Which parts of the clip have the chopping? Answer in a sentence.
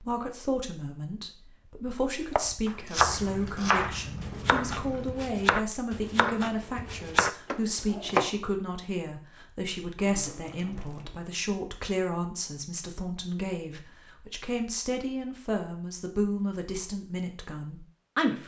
You can hear the chopping from 2.4 to 8.3 s.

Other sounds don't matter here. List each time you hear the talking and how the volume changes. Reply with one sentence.
The talking can be heard from 0.0 to 18.4 s, at a steady volume.